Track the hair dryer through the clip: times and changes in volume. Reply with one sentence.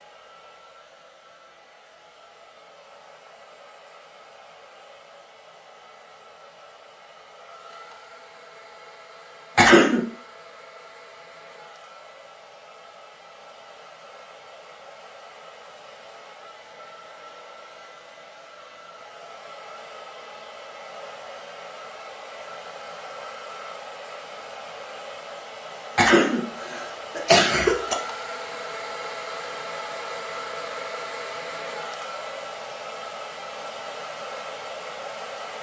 You can hear the hair dryer from 0.0 to 35.5 s, getting louder.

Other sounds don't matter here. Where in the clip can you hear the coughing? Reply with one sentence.
The coughing can be heard from 9.6 to 10.1 s and from 25.9 to 27.9 s.